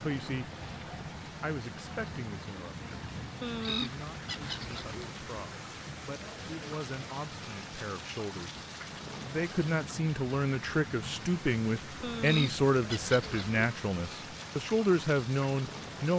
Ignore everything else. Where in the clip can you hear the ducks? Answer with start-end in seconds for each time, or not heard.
3.4-5.1, 12.0-13.7.